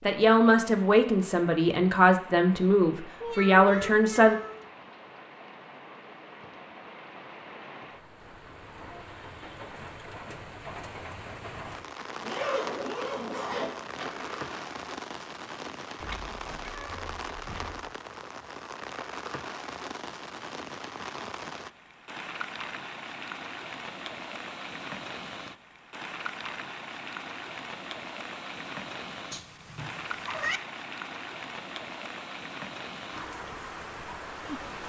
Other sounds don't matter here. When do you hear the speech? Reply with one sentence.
The speech can be heard from 0.1 to 4.3 s.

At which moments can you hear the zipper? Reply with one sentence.
The zipper can be heard from 12.2 to 14.8 s.